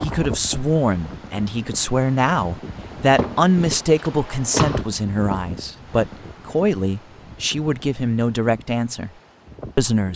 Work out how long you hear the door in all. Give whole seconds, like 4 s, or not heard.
2 s.